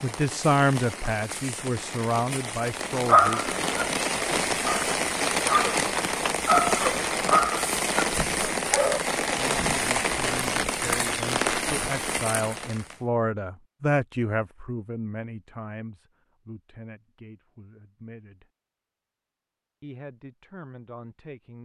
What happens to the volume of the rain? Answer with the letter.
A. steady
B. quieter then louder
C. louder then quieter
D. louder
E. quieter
D.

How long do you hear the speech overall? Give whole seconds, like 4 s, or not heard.
14 s.